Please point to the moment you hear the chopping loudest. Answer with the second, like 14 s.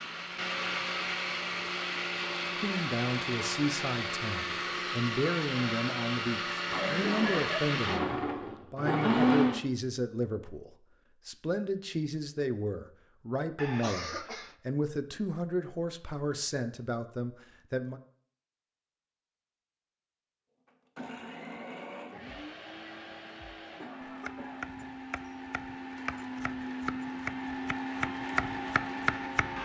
29 s.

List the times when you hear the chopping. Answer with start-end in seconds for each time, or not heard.
24.2-29.6.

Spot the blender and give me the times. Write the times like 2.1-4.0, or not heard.
0.0-9.6, 20.6-29.6.